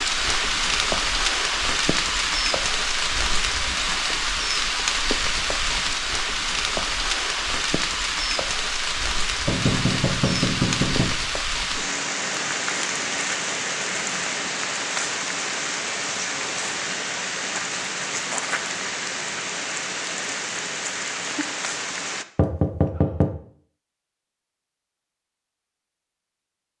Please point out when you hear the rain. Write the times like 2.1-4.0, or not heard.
0.0-22.2.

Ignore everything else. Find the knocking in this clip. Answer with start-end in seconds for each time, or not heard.
9.4-11.1, 22.4-23.4.